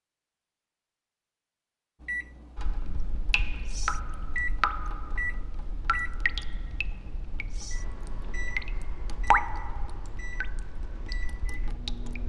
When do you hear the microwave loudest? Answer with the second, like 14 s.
5 s.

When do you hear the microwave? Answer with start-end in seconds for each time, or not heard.
2.0-12.2.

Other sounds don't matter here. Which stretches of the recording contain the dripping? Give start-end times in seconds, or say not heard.
2.5-12.2.